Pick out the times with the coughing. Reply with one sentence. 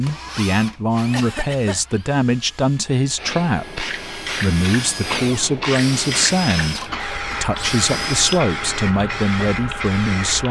You can hear the coughing from 1.1 to 1.9 s and from 6.8 to 7.5 s.